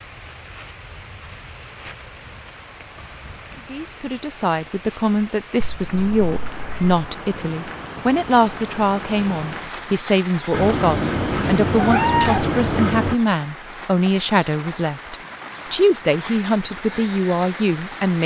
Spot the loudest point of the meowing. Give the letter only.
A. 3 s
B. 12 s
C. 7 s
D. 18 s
B.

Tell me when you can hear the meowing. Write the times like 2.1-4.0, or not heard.
5.6-6.8, 10.5-13.2.